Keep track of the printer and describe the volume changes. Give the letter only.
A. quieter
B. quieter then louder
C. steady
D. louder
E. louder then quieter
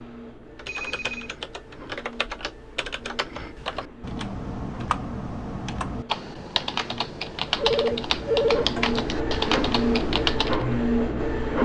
D.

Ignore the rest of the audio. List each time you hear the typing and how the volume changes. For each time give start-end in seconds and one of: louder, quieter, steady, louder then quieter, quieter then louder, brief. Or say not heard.
0.6-10.7 louder.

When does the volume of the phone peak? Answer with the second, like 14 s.
8 s.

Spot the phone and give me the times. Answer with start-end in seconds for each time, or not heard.
0.7-1.3, 7.6-9.0.